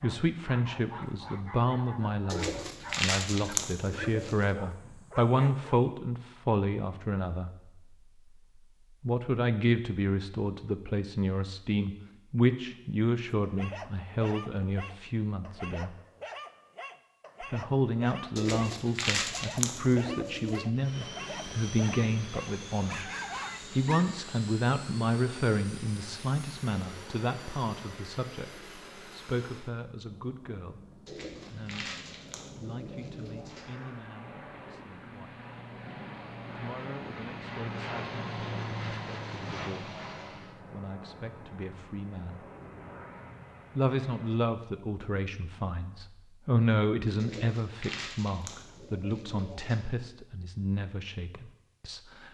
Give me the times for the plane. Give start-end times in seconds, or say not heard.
20.8-44.4.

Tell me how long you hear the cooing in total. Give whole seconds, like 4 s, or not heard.
10 s.